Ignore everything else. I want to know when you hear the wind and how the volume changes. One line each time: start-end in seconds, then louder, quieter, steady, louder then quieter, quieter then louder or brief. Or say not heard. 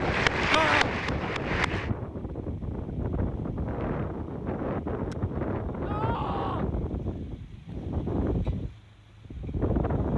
0.0-10.1 steady.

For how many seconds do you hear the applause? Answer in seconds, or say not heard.
2 s.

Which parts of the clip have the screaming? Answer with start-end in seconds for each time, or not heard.
0.5-0.9, 5.8-6.7.